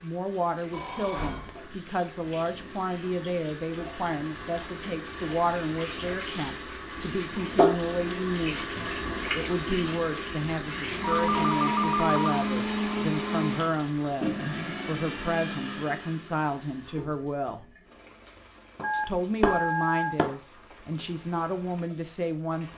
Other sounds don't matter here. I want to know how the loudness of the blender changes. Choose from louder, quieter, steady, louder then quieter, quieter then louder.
quieter.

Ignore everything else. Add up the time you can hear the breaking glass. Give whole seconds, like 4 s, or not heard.
2 s.